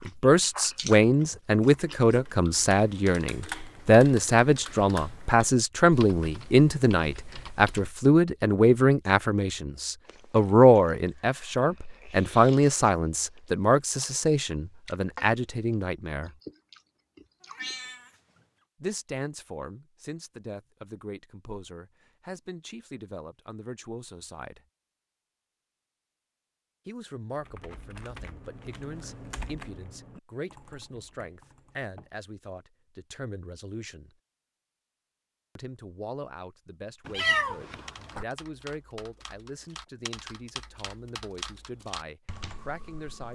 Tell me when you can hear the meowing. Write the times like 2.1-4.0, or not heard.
17.4-18.1, 37.0-38.2.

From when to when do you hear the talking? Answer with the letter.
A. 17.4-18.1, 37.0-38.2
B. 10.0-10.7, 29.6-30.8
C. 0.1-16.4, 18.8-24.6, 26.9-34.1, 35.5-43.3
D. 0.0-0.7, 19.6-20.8
C.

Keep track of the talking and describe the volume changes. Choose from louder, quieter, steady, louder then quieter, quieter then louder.
quieter.